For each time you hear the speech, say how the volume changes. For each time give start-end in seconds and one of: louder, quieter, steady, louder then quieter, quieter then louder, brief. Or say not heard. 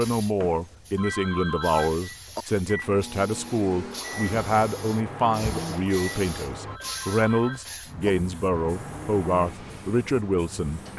0.0-10.9 steady.